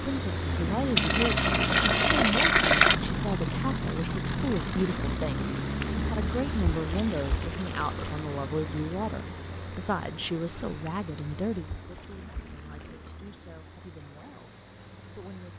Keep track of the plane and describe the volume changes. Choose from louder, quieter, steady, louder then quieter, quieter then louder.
quieter.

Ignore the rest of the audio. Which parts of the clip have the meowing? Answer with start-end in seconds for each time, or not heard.
not heard.